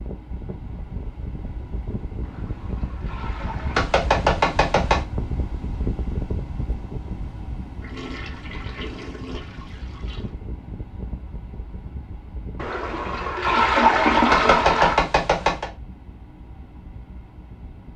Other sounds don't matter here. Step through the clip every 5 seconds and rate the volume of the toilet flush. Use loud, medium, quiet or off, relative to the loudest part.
quiet, quiet, loud, off.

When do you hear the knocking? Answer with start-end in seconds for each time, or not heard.
3.8-5.0, 14.3-15.7.